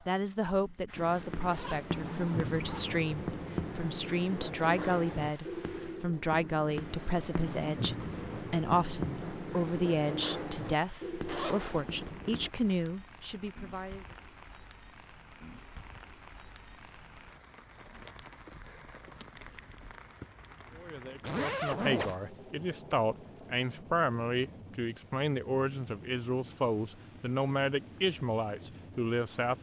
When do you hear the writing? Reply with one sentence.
The writing can be heard from 0.9 to 12.5 s.